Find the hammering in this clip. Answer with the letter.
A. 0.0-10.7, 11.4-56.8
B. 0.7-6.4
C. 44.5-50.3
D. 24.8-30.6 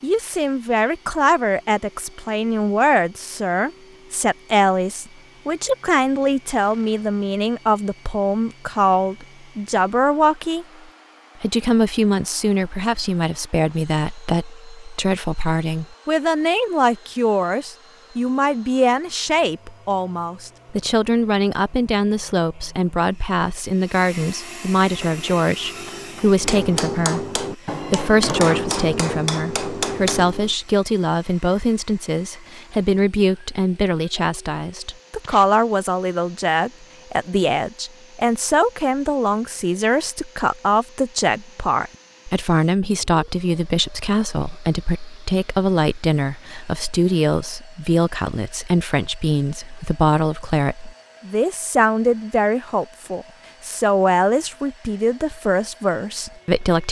D.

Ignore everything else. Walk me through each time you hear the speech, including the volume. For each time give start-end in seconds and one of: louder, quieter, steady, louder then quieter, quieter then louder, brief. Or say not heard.
0.0-10.7 steady
11.4-56.8 steady.